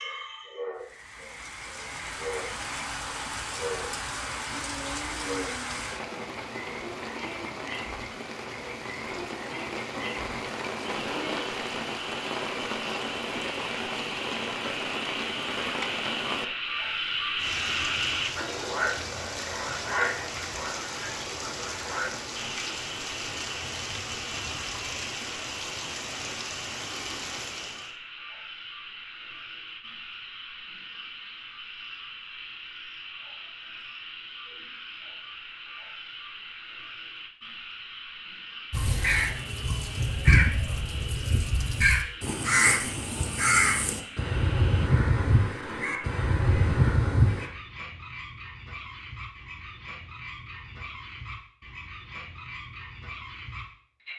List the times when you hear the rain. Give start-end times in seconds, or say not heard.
0.0-27.9.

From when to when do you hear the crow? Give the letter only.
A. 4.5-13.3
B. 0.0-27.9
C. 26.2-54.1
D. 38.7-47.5
D.